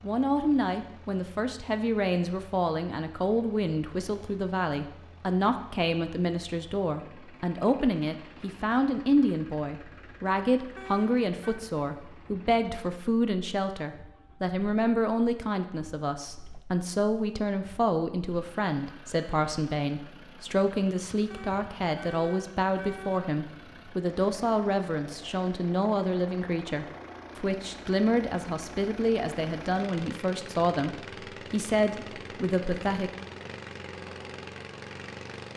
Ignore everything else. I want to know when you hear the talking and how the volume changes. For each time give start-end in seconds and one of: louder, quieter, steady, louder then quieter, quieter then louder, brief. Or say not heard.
0.0-33.1 steady.